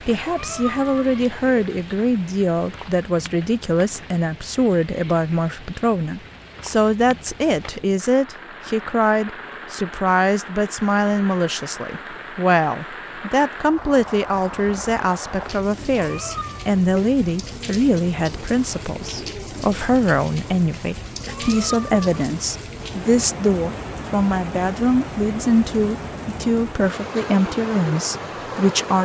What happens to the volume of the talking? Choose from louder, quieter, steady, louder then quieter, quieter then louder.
steady.